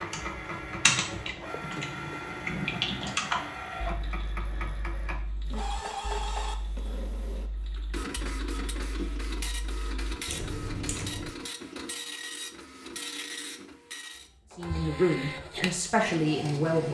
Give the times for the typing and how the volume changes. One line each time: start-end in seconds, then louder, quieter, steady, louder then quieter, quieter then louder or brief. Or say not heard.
0.1-11.3 quieter then louder.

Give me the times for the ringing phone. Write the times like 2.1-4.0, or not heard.
not heard.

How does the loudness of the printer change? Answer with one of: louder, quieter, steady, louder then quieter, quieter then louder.
steady.